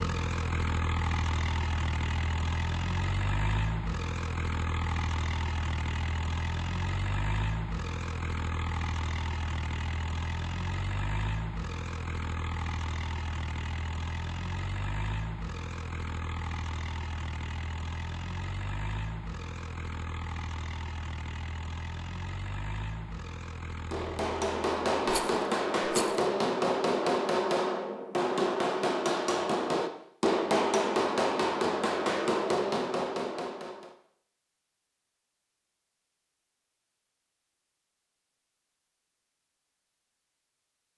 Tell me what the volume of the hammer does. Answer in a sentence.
The volume of the hammer stays about the same.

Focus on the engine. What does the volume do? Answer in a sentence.
The loudness of the engine goes down.